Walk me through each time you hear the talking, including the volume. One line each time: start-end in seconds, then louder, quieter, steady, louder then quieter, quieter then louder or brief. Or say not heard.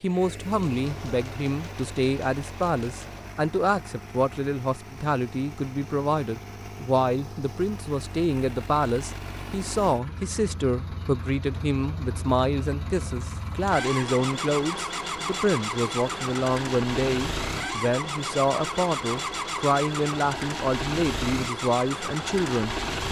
0.0-23.0 steady.